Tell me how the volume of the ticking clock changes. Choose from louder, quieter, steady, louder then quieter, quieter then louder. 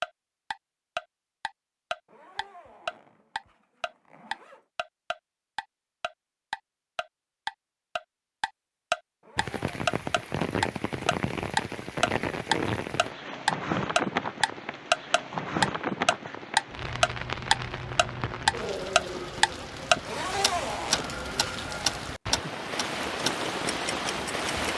louder.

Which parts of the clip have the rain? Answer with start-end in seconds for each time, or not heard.
9.3-24.7.